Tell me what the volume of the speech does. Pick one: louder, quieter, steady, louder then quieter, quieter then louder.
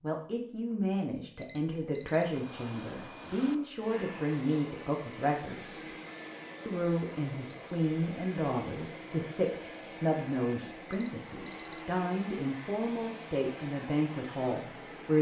steady.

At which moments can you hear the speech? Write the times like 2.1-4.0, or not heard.
0.0-5.8, 6.7-15.1.